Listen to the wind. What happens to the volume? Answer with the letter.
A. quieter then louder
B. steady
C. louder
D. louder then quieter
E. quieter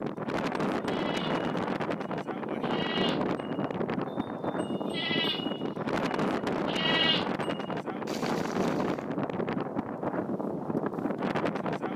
B.